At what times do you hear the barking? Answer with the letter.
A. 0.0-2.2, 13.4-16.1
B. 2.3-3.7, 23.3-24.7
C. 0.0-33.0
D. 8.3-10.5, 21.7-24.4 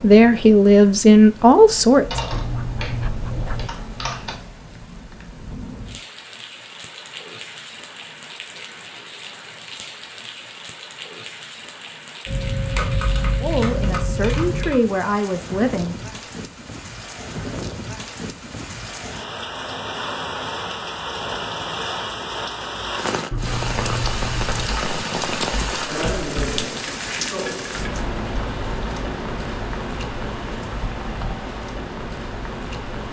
B.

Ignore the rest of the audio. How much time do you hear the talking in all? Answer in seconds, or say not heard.
5 s.